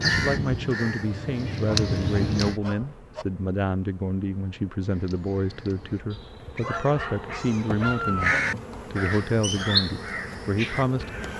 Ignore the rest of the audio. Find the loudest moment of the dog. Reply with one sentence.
The loudest moment of the dog is at 8 seconds.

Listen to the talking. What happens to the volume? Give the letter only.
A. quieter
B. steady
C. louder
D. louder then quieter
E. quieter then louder
B.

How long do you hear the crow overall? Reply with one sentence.
The crow can be heard for 9 seconds in total.